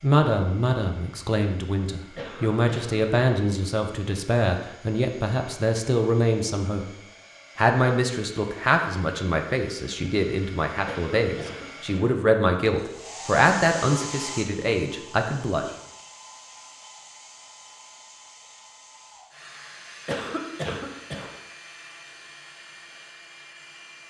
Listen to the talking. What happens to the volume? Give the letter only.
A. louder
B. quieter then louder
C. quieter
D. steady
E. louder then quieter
D.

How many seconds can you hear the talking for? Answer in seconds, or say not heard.
15 s.